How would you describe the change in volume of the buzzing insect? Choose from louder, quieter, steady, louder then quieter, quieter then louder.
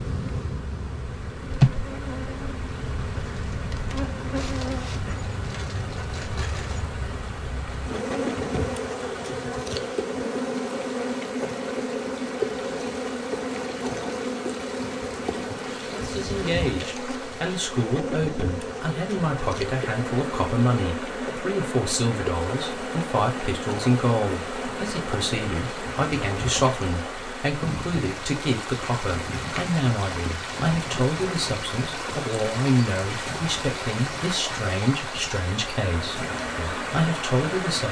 quieter.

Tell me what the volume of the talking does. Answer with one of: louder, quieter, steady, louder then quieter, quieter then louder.
steady.